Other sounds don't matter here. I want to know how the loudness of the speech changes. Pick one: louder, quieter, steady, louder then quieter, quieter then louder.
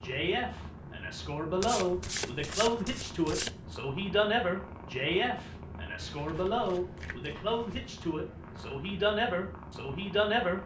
steady.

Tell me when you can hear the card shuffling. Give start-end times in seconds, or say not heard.
1.6-3.5, 6.0-8.0.